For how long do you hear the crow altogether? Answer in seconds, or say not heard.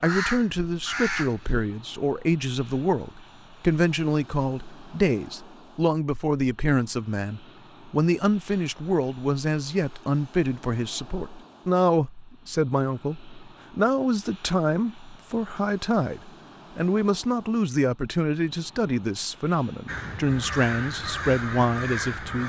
4 s.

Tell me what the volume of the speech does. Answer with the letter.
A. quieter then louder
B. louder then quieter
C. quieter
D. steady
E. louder
D.